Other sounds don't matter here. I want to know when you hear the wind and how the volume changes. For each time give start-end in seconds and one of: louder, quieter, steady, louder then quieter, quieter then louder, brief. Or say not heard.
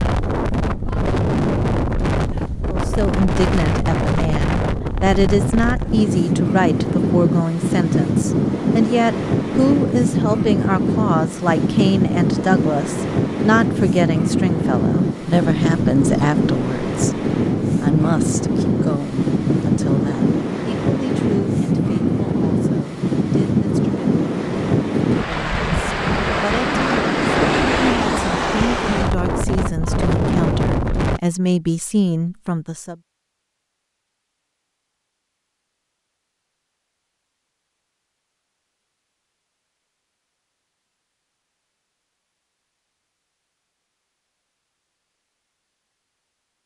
0.0-31.2 steady.